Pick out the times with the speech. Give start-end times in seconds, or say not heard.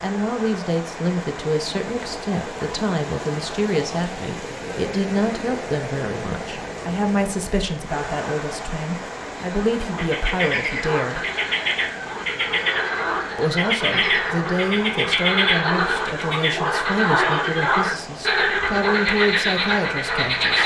0.0-11.2, 13.3-20.6.